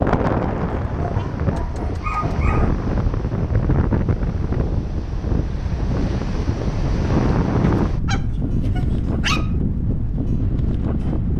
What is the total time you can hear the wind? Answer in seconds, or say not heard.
11 s.